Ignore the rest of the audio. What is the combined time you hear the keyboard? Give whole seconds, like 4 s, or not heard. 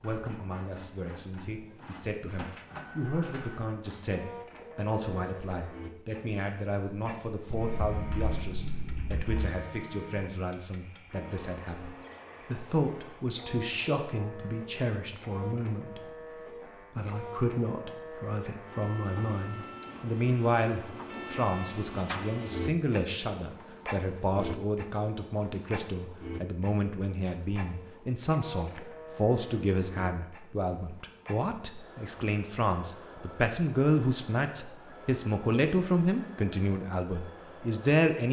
2 s.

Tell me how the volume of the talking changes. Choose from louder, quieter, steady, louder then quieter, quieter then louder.
louder.